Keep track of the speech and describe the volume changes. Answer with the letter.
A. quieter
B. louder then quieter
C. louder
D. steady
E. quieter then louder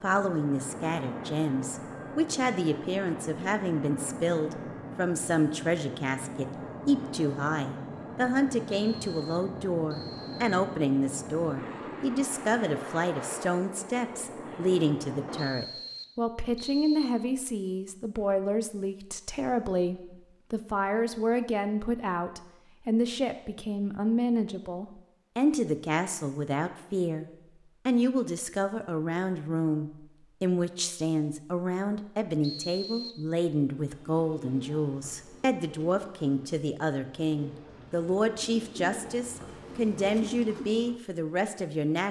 D.